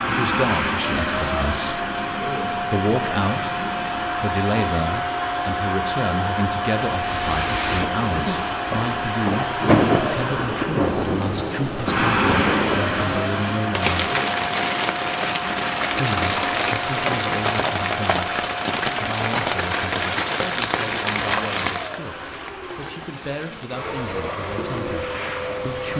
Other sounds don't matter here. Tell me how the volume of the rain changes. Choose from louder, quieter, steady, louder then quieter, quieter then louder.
quieter.